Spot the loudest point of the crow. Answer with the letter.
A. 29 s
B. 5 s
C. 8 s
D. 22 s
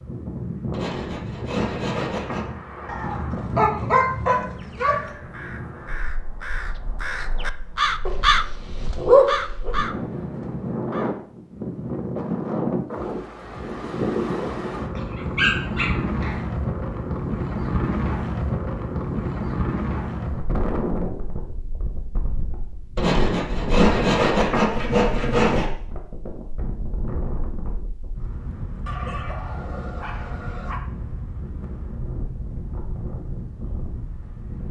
C.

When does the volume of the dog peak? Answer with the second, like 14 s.
9 s.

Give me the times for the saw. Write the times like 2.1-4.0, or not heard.
0.7-2.5, 22.9-25.7.